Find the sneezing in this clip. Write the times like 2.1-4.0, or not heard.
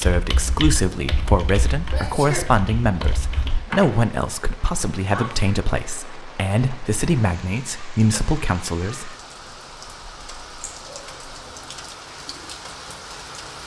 1.9-2.5, 5.0-5.5, 10.6-11.2.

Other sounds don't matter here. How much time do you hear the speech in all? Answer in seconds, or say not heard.
9 s.